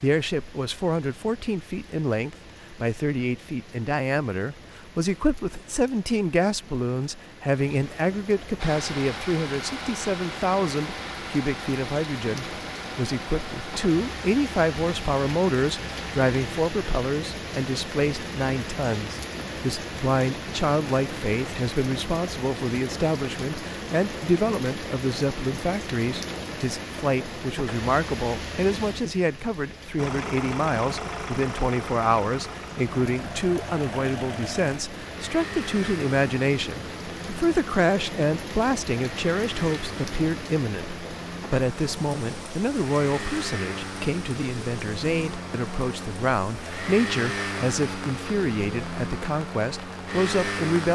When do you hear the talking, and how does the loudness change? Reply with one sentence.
The talking can be heard from 0.0 to 50.8 s, at a steady volume.